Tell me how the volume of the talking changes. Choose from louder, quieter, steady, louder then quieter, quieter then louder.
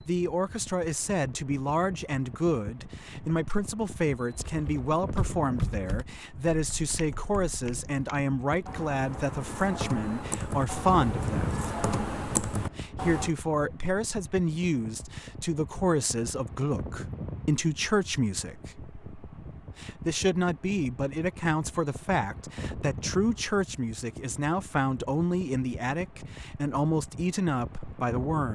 steady.